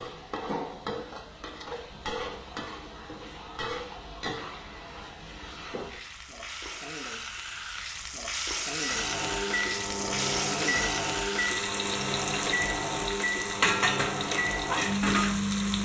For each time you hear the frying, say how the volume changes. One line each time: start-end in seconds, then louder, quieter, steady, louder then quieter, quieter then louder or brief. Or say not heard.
0.0-15.8 louder.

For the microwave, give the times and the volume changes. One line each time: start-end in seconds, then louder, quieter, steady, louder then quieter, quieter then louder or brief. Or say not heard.
8.8-15.8 steady.